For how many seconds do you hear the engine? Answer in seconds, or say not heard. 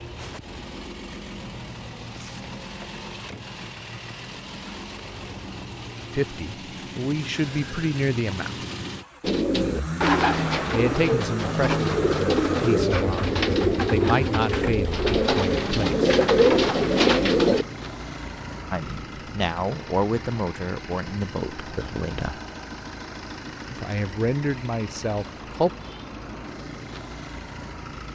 28 s.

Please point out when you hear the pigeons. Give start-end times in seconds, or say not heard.
9.2-17.6.